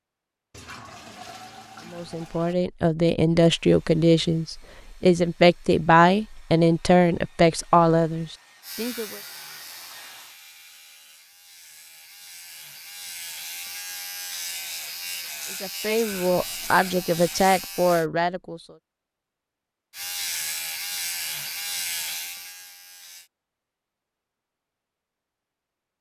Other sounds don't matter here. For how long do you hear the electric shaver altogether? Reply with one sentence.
The electric shaver can be heard for 13 seconds in total.